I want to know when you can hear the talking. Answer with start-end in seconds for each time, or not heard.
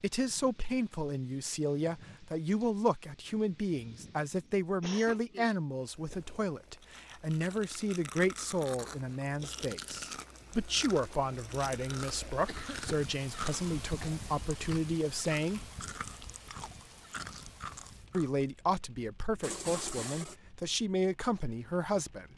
0.0-15.7, 18.1-22.3.